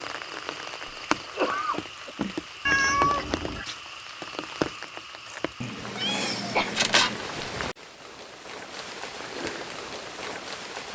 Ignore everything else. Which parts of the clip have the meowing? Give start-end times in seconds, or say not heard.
2.6-3.6, 5.6-7.2.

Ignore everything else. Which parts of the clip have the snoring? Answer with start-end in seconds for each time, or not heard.
not heard.